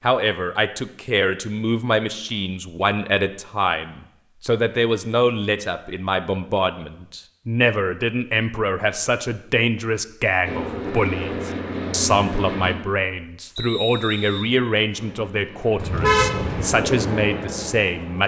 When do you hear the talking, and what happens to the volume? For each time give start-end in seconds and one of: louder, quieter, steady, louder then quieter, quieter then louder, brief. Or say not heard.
0.0-18.2 steady.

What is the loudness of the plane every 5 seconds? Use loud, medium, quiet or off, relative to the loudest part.
off, off, loud, loud.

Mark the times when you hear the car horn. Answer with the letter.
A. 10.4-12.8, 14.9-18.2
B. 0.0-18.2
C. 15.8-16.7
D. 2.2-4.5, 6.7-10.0
C.